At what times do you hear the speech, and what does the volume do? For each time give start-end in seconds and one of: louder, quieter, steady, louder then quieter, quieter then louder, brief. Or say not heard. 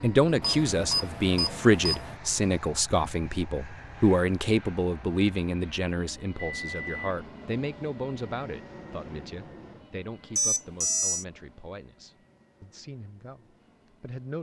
0.0-14.3 quieter.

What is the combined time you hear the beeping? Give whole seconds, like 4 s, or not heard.
3 s.